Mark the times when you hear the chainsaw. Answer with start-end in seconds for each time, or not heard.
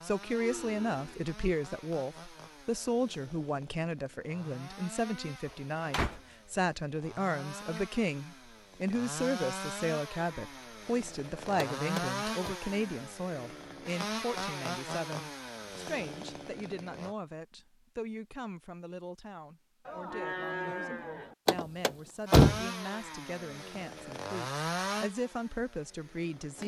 0.0-17.1, 22.2-26.6.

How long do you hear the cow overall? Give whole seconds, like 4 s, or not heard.
2 s.